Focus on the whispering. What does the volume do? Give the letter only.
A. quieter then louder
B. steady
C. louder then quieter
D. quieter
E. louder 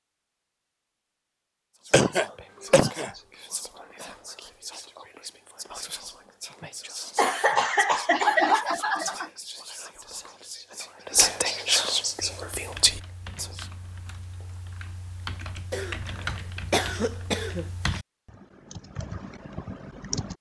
E.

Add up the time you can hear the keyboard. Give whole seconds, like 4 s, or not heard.
8 s.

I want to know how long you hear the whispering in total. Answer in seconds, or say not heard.
12 s.